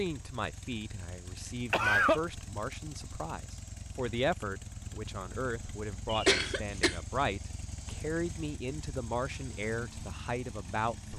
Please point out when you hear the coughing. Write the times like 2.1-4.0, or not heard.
1.7-2.2, 6.0-7.0.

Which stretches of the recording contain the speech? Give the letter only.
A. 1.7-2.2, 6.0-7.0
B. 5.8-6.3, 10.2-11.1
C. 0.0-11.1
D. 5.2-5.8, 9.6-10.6
C.